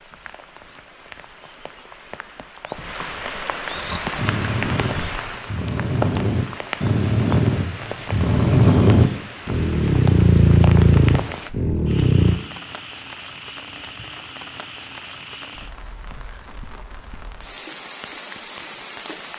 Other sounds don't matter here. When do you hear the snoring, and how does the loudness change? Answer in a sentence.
The snoring can be heard from 3.8 to 12.4 s, getting louder.